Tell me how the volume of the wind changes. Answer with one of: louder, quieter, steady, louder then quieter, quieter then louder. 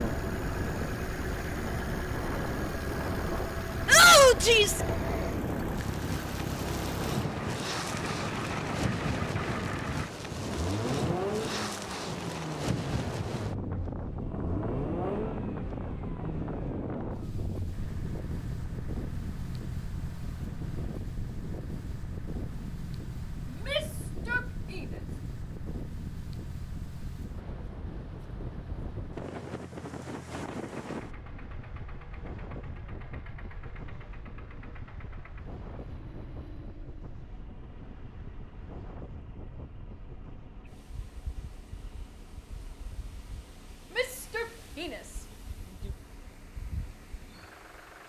quieter.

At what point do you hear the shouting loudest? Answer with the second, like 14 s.
4 s.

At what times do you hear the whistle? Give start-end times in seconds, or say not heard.
not heard.